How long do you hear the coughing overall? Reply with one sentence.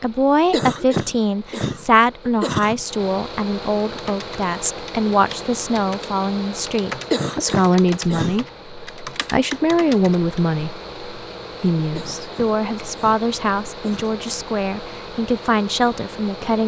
The coughing can be heard for 6 seconds in total.